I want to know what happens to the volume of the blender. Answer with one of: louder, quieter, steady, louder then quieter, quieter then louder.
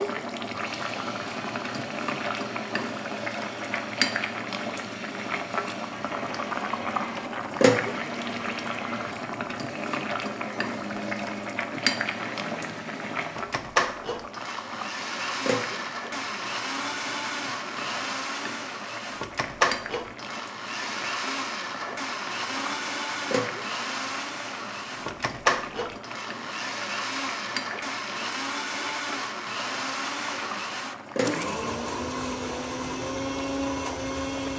louder.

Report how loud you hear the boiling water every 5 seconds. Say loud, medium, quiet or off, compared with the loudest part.
loud, loud, loud, medium, medium, medium, medium.